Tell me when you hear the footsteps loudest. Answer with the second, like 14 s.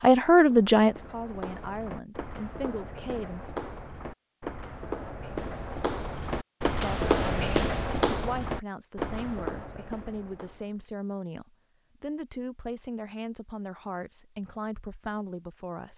7 s.